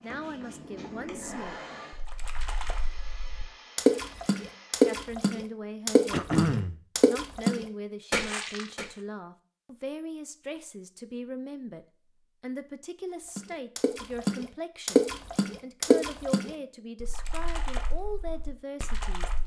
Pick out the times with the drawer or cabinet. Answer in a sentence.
You can't hear the drawer or cabinet here.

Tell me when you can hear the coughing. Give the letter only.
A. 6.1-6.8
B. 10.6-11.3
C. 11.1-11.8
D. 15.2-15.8
A.